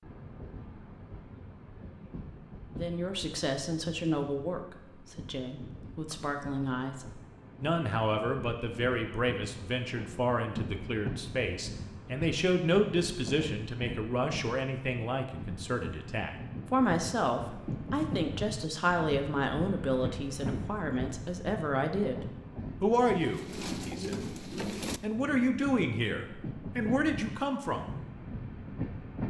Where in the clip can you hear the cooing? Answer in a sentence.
You can hear the cooing from 23.1 to 25.0 s.